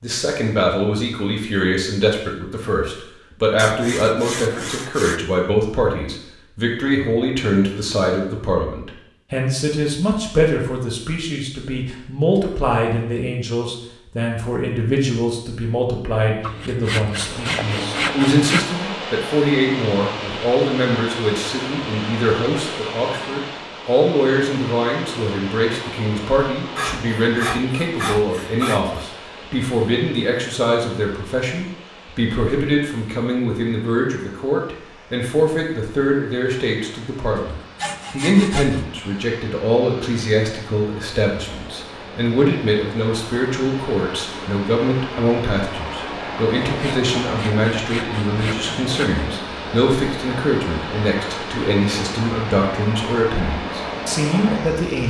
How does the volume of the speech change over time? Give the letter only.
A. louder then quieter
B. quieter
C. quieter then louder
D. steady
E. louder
D.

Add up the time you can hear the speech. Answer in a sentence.
The speech can be heard for 55 seconds in total.